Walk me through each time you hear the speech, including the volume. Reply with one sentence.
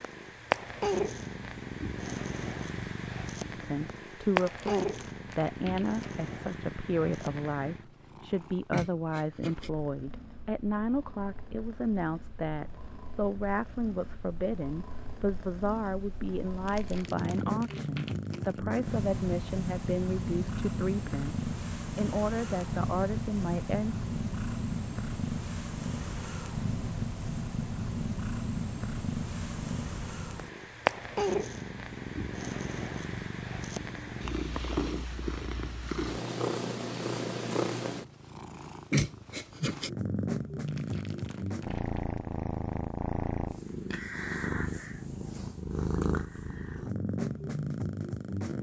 You can hear the speech from 3.5 to 23.9 s, at a steady volume.